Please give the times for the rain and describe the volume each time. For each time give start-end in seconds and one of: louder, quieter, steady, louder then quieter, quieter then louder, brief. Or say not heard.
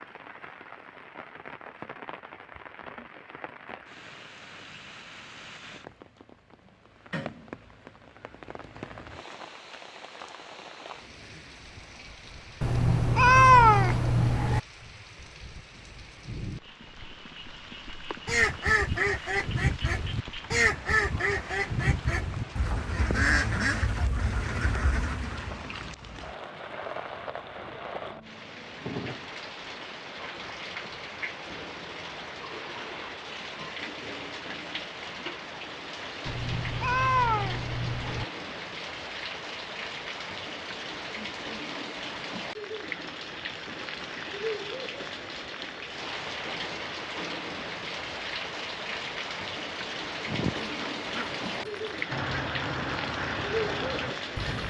0.0-54.6 louder.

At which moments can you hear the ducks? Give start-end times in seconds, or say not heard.
18.2-25.6, 50.2-54.6.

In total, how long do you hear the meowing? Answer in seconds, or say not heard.
4 s.